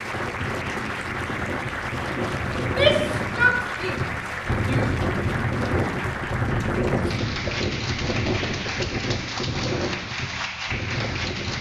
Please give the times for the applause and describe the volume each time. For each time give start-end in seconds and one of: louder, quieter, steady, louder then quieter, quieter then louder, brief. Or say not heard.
0.0-11.5 steady.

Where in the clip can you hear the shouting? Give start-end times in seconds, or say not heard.
2.5-4.9.